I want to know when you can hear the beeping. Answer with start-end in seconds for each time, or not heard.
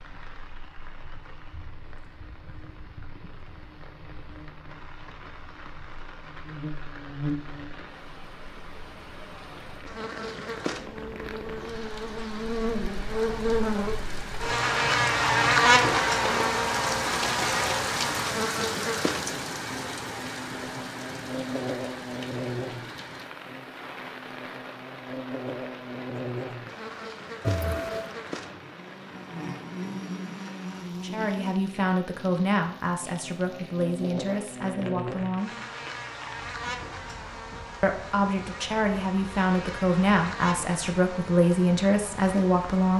27.4-28.1.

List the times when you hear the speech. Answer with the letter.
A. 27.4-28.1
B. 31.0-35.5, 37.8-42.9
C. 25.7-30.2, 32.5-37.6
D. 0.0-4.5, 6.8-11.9
B.